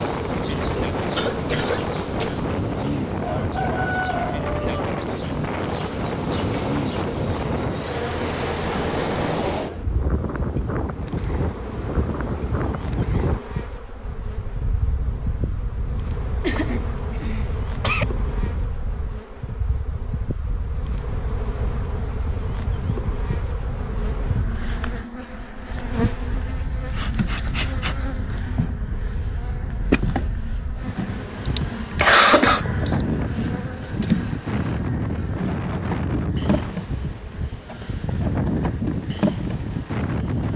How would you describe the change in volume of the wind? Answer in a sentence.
The volume of the wind goes down, then up.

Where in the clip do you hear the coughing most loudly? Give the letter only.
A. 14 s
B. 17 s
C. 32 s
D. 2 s
C.